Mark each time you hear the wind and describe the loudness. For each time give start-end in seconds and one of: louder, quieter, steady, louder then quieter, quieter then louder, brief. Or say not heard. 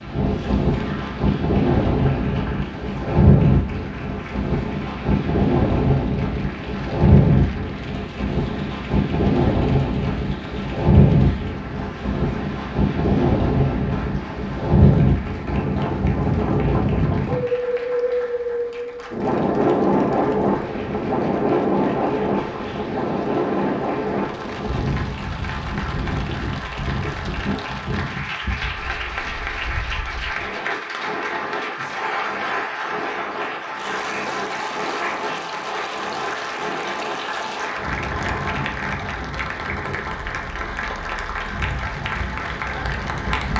0.0-43.5 quieter.